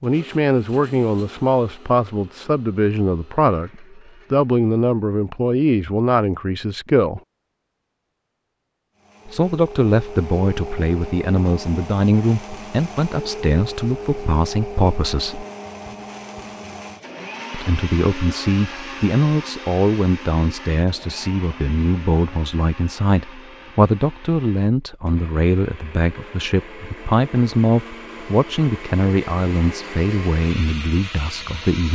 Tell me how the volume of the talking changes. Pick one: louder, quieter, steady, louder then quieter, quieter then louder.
steady.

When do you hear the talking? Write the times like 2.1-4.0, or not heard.
0.0-7.2, 9.2-15.4, 17.5-31.9.